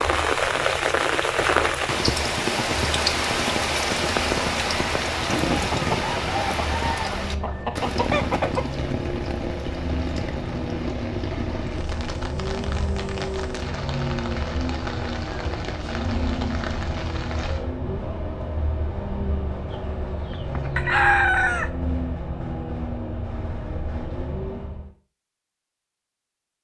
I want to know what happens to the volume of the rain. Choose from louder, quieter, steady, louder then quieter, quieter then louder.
quieter.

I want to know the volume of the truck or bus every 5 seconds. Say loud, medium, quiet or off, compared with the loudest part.
medium, loud, loud, loud, loud, off.